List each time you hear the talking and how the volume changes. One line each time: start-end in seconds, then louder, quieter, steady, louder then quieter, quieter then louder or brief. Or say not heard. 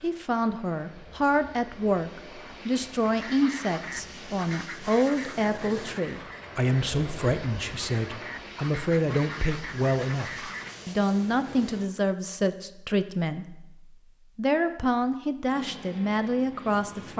0.0-17.1 steady.